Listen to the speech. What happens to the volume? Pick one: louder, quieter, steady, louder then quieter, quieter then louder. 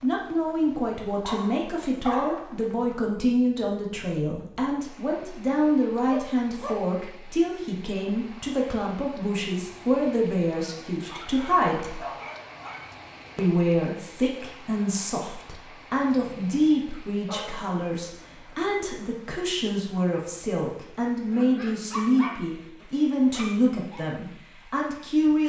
steady.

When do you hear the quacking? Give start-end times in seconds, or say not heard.
not heard.